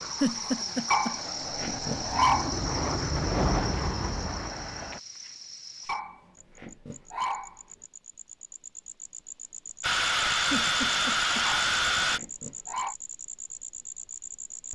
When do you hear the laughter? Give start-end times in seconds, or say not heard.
0.2-1.1, 10.5-11.4.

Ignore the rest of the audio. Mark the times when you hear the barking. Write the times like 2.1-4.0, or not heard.
0.9-2.5, 5.8-7.6, 11.4-12.9.